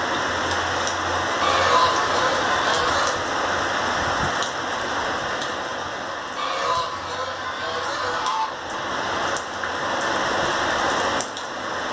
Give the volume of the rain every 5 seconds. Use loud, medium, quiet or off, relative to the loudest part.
loud, medium, loud.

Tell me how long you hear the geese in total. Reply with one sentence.
The geese can be heard for 4 seconds in total.